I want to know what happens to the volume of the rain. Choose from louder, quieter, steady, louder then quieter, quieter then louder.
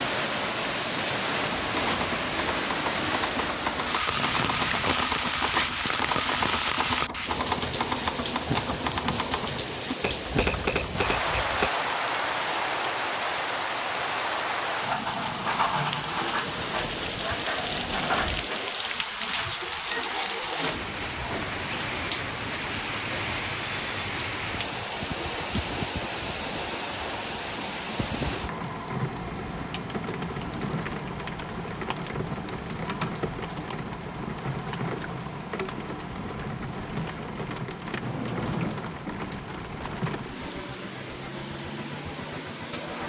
quieter.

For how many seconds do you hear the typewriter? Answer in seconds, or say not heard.
10 s.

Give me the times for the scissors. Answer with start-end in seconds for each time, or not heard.
4.1-5.0, 14.8-15.7, 38.0-38.9.